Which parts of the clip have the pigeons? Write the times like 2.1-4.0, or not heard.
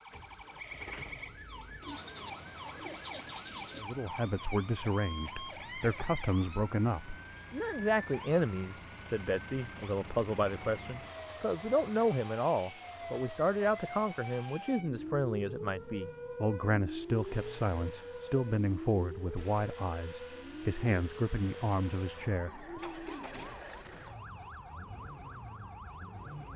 1.8-3.9, 22.4-24.0.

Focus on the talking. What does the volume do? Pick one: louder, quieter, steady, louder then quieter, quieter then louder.
steady.